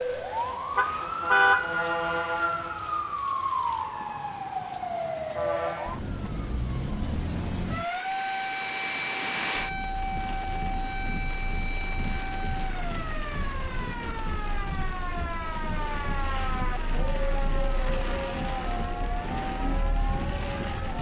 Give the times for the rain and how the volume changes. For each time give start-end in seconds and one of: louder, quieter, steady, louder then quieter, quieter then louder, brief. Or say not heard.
0.0-20.9 louder.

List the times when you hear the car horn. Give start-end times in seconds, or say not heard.
0.8-1.8.